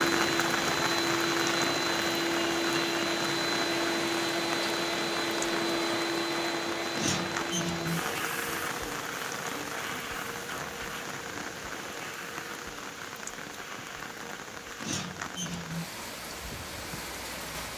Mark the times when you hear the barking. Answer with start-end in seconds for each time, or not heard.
not heard.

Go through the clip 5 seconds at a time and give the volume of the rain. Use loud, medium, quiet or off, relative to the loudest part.
loud, loud, medium, medium.